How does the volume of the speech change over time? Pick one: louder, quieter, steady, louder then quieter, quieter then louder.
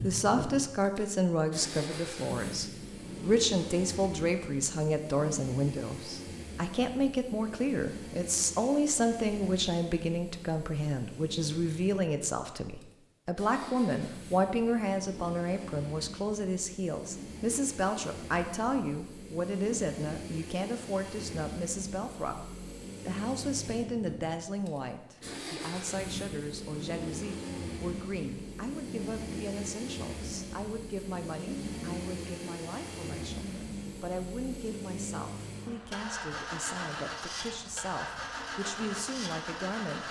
quieter.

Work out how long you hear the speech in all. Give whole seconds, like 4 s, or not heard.
40 s.